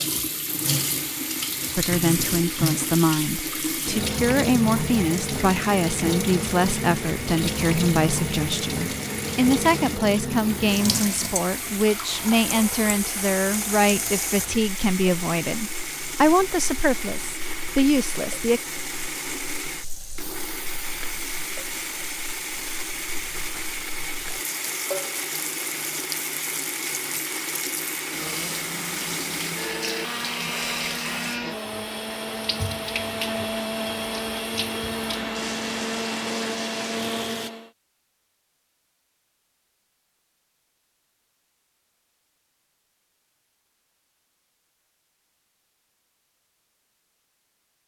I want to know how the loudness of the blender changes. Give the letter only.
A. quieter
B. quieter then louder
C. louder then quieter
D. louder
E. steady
D.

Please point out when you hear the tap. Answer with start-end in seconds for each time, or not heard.
0.0-37.5.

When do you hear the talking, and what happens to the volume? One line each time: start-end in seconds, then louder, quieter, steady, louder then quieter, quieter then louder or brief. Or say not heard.
1.8-18.6 steady.